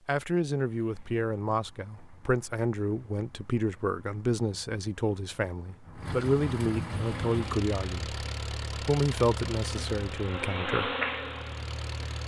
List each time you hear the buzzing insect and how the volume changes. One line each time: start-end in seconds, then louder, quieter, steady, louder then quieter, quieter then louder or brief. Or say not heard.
6.8-12.2 louder.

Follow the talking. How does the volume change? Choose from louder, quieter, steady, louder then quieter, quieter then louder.
steady.